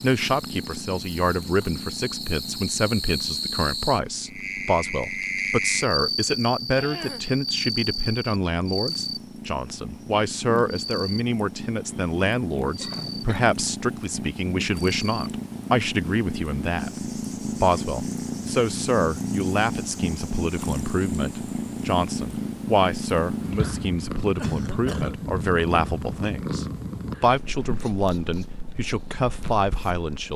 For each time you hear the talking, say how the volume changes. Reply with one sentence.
You can hear the talking from 0.0 to 30.3 s, at a steady volume.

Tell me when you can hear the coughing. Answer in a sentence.
The coughing can be heard from 6.8 to 7.3 s, from 12.8 to 13.3 s and from 24.4 to 25.1 s.